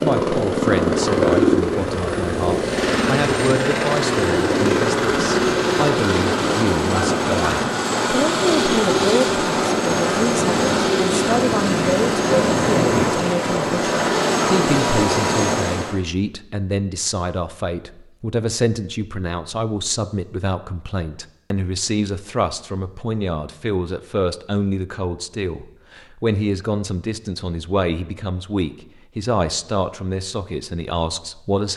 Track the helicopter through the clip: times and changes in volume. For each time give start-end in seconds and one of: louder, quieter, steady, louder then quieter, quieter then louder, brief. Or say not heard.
0.0-16.0 steady.